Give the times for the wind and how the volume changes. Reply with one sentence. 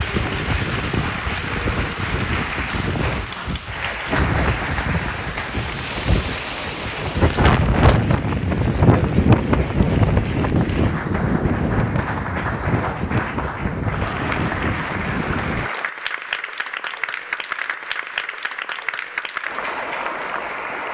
You can hear the wind from 0.0 to 15.7 s, getting louder then quieter.